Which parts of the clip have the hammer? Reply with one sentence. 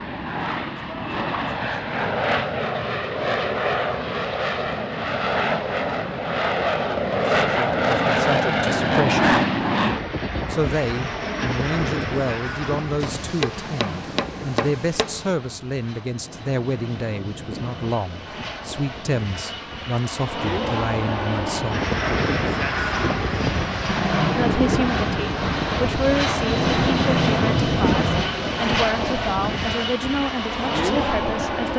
You can hear the hammer from 13.0 to 15.3 s.